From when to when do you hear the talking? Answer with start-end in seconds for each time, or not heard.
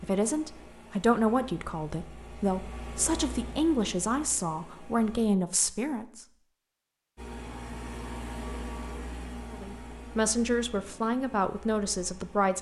0.0-6.2, 9.5-12.5.